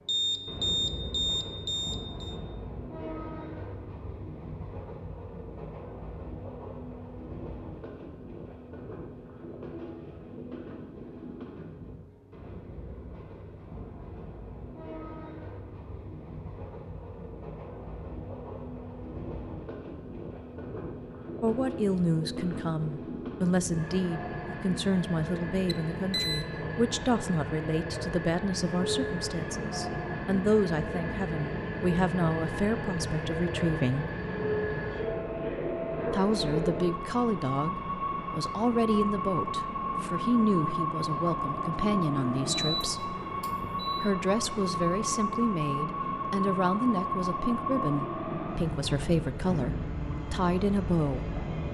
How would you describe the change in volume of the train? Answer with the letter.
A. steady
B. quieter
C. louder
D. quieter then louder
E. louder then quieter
C.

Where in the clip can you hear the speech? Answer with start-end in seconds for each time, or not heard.
21.4-34.0, 36.1-43.1, 44.0-51.3.